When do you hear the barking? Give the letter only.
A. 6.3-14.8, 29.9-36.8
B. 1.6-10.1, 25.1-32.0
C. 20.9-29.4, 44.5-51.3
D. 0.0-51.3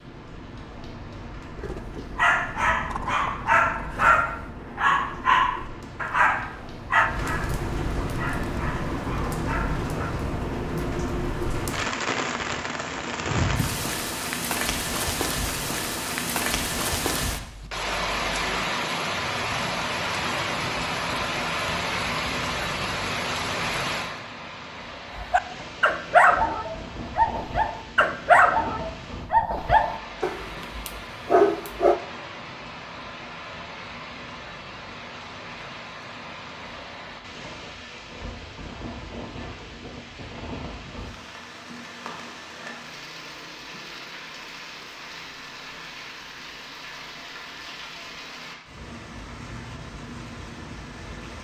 B.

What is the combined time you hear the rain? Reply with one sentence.
You can hear the rain for 51 seconds altogether.